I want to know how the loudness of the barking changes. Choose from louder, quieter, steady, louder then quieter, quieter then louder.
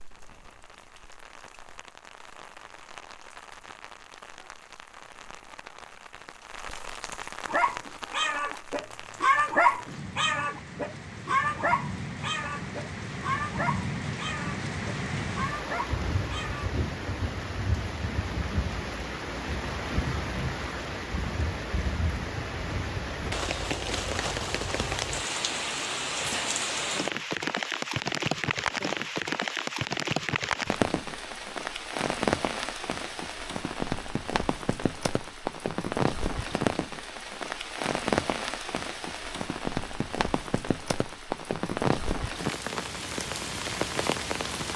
quieter.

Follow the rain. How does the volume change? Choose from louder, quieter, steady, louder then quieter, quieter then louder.
louder.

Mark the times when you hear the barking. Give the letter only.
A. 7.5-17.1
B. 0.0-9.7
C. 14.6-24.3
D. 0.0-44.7
A.